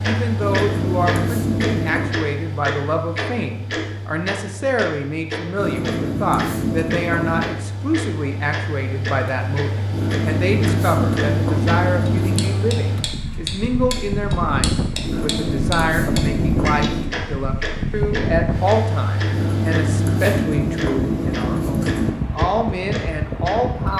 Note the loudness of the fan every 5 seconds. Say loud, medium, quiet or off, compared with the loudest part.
medium, medium, loud, loud, loud.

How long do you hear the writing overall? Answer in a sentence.
You can hear the writing for 11 seconds altogether.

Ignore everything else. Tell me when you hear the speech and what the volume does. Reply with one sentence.
You can hear the speech from 0.0 to 23.9 s, at a steady volume.